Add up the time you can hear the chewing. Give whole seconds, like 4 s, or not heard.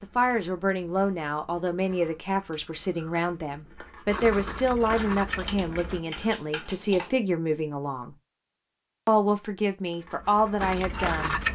8 s.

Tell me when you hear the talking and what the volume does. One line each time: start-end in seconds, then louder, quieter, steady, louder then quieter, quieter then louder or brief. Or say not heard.
0.0-8.2 steady
9.1-11.3 brief.